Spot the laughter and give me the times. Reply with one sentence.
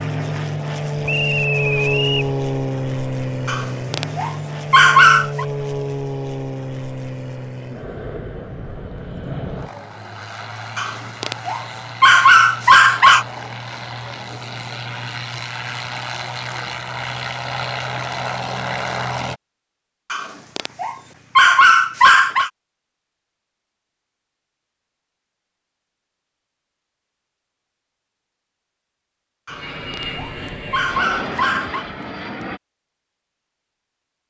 The laughter can't be heard in this clip.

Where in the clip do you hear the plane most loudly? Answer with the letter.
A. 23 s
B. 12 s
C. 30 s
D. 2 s
D.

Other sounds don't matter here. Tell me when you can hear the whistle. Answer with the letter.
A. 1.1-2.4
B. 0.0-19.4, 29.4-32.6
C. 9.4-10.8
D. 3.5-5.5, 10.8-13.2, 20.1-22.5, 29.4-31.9
A.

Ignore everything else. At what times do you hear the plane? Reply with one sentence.
You can hear the plane from 0.0 to 19.4 s and from 29.4 to 32.6 s.